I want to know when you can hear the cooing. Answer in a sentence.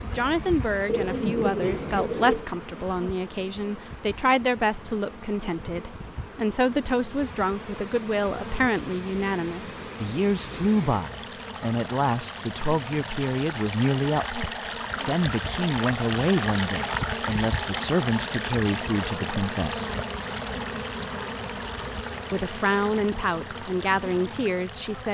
The cooing can be heard from 0.8 to 2.5 s.